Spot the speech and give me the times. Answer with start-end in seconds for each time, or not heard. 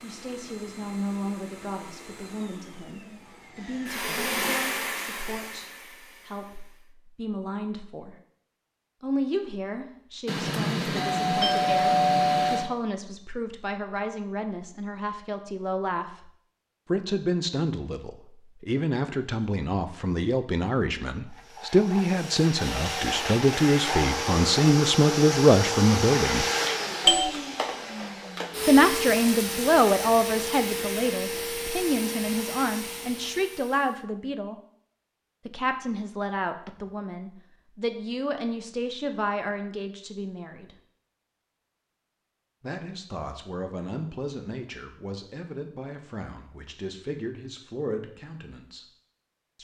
0.0-8.2, 9.0-26.4, 28.6-34.6, 35.5-40.8, 42.6-48.9.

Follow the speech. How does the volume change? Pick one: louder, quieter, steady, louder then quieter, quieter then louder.
louder then quieter.